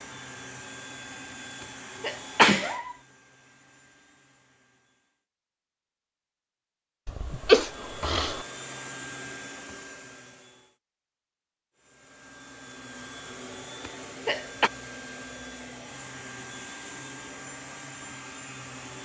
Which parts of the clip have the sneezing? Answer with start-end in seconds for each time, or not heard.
2.0-3.0, 7.0-8.4, 13.8-14.7.